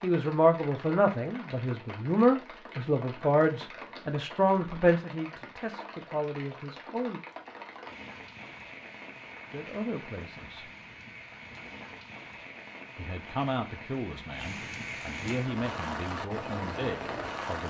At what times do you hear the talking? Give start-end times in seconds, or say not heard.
0.0-7.2, 9.5-10.7, 12.9-17.6.